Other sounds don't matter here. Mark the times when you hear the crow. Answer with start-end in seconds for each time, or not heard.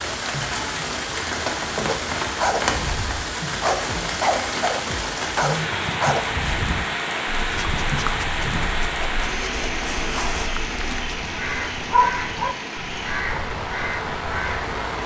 11.1-14.8.